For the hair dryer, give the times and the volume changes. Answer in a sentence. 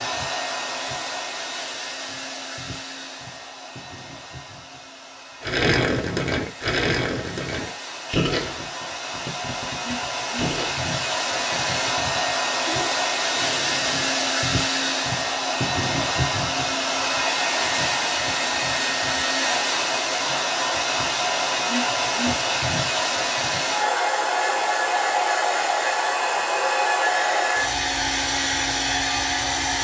You can hear the hair dryer from 0.0 to 29.7 s, getting louder.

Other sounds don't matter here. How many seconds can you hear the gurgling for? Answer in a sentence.
You can hear the gurgling for 9 seconds altogether.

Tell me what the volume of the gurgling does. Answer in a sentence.
The loudness of the gurgling goes down.